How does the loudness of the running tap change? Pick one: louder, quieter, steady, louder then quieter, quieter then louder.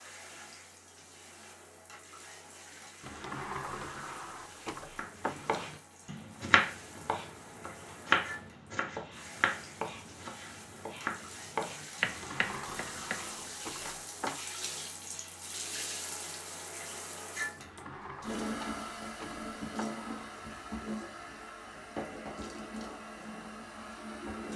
louder.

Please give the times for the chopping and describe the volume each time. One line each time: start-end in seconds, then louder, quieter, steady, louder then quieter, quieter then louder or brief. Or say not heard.
5.0-14.4 quieter.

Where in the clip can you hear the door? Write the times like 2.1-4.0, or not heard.
3.0-5.7, 12.0-14.4, 17.6-20.1.